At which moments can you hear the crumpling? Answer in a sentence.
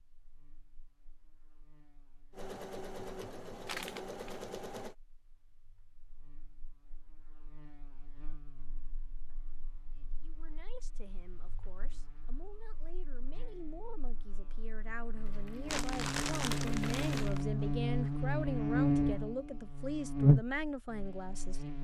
You can hear the crumpling from 3.6 to 4.4 s and from 15.7 to 17.4 s.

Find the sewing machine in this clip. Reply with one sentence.
The sewing machine can be heard from 2.3 to 5.0 s and from 15.2 to 17.3 s.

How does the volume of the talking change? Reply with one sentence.
The loudness of the talking goes up.